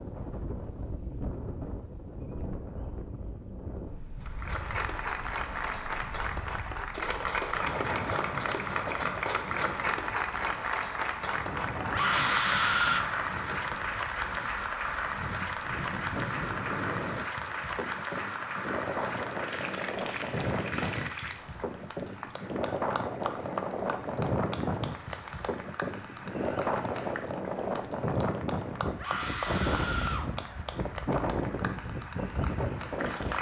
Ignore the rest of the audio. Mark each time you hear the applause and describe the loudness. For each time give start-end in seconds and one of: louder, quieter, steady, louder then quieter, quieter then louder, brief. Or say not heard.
4.2-33.3 quieter.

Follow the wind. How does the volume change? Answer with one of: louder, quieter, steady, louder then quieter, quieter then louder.
louder.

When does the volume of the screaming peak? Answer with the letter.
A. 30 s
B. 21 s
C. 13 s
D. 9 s
C.